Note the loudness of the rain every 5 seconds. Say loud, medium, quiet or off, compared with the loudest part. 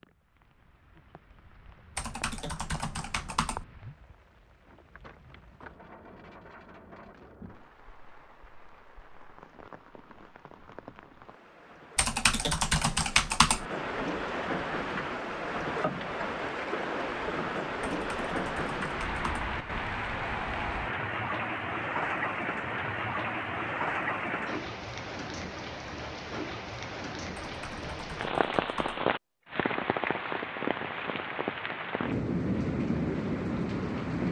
quiet, quiet, medium, loud, loud, loud, loud.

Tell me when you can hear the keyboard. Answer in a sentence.
You can hear the keyboard from 1.9 to 3.6 s, from 11.9 to 13.7 s, from 17.8 to 19.5 s and from 27.4 to 29.1 s.